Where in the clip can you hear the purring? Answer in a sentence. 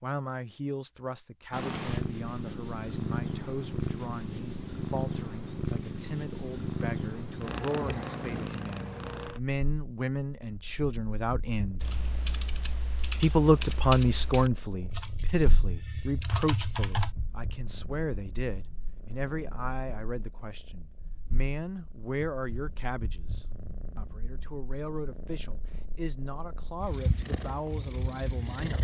You can hear the purring from 1.5 to 28.8 s.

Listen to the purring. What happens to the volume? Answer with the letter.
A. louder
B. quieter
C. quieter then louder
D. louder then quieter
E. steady
C.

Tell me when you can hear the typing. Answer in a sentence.
You can hear the typing from 11.8 to 17.1 s.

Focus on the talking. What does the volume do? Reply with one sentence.
The volume of the talking goes up, then down.